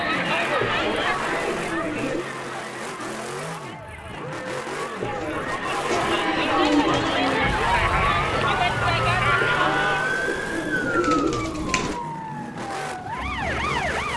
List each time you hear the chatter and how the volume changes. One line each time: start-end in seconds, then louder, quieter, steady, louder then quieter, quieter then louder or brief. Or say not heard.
0.0-10.2 quieter then louder.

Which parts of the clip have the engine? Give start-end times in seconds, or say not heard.
0.0-14.1.